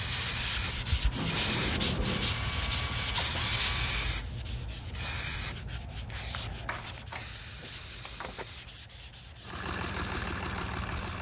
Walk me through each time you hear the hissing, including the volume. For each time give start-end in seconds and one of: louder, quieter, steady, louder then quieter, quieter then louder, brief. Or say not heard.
0.0-11.1 quieter.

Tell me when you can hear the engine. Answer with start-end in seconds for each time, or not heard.
9.4-11.1.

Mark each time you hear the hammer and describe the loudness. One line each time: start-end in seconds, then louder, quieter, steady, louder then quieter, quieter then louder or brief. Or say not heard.
not heard.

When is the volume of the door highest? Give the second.
2 s.